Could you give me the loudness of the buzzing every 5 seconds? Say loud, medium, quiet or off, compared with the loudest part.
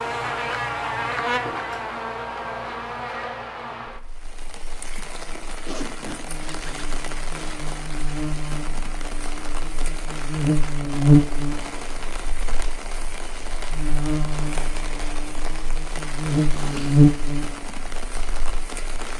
medium, quiet, loud, loud.